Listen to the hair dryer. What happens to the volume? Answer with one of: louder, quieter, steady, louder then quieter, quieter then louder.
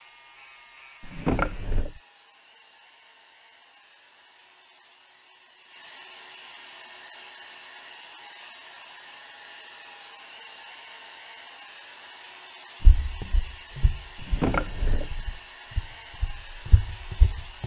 louder.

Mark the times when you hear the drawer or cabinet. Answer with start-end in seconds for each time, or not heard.
1.0-2.0, 14.2-15.3.